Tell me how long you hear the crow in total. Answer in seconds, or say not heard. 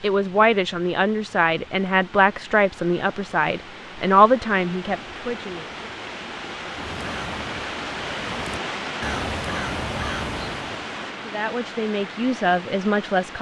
4 s.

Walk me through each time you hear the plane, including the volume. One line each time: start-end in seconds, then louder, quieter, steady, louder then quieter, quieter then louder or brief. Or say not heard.
not heard.